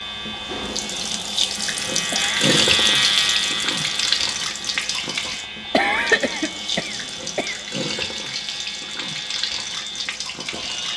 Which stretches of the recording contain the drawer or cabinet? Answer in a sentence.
You can't hear the drawer or cabinet here.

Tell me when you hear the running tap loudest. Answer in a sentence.
The volume of the running tap peaks at 3 seconds.